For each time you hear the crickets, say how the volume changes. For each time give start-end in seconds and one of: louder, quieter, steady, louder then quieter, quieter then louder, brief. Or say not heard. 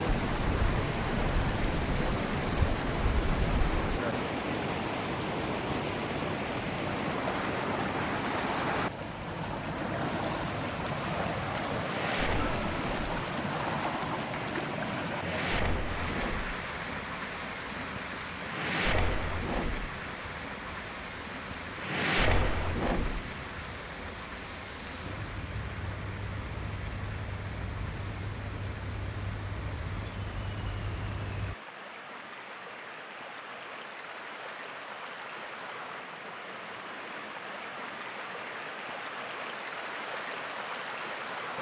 0.2-31.6 louder.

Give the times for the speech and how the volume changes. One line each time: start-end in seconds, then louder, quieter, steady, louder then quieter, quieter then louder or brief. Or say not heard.
not heard.